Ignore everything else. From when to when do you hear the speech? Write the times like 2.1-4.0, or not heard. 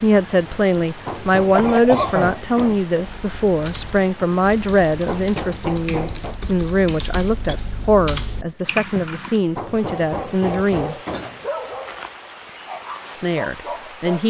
0.0-10.9, 13.1-14.2.